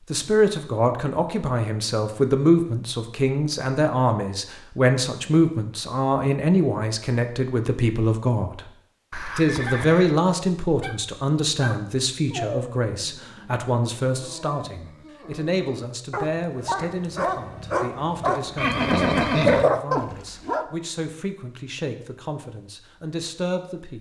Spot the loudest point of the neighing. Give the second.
19 s.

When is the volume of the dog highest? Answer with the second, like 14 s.
20 s.